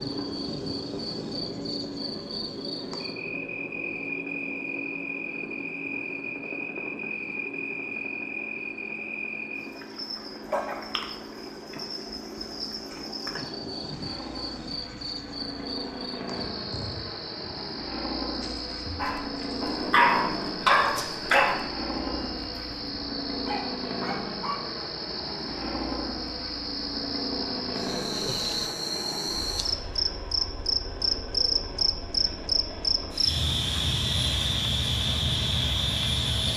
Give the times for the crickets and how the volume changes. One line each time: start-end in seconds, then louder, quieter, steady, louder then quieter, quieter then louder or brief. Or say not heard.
0.0-36.5 louder.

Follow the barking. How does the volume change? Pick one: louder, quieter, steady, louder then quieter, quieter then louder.
quieter then louder.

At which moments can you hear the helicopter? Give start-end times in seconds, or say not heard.
0.0-36.5.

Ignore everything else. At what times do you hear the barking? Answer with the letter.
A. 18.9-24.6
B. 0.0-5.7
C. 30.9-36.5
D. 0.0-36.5
A.